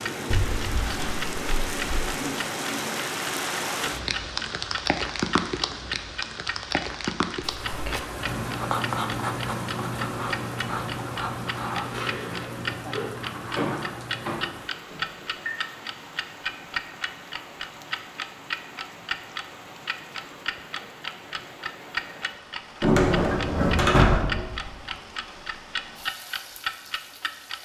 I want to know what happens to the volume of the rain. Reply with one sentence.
The loudness of the rain goes down.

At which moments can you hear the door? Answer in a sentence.
The door can be heard from 0.3 to 2.0 s, from 13.5 to 15.5 s and from 22.8 to 24.7 s.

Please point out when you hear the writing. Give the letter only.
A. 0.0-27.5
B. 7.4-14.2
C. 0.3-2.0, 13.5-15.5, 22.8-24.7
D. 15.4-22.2
B.